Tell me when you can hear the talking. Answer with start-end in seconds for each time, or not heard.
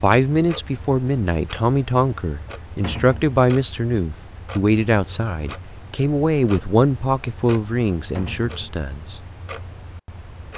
0.0-9.2.